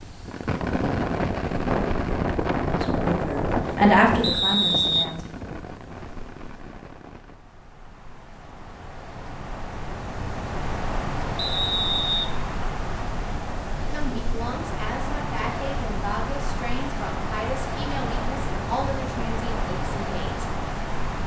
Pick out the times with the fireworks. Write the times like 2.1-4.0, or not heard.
0.2-7.5.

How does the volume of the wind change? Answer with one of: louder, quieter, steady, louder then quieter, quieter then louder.
quieter then louder.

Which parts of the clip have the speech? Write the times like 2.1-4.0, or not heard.
2.6-5.3, 13.9-20.5.